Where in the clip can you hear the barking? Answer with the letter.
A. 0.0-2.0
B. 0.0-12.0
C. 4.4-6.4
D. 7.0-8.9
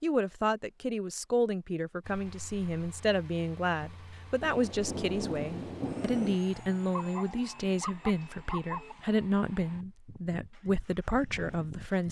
D.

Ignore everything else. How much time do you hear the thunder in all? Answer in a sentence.
The thunder can be heard for 2 seconds in total.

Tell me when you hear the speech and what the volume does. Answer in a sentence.
You can hear the speech from 0.0 to 12.0 s, at a steady volume.